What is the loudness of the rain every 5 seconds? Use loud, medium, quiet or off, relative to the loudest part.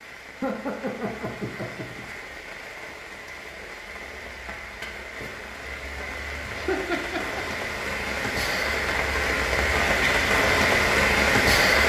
quiet, medium, loud.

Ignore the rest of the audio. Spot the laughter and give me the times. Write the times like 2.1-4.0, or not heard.
0.4-2.0, 6.5-7.5.